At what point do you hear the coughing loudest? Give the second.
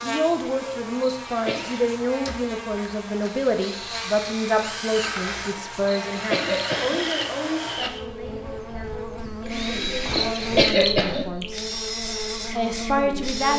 11 s.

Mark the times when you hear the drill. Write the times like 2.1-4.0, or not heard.
1.4-13.5.